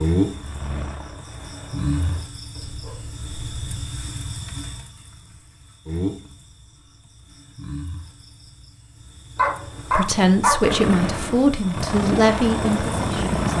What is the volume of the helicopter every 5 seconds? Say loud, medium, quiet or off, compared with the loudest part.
quiet, off, loud.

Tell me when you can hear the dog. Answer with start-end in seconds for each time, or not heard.
2.5-3.8, 9.3-10.7.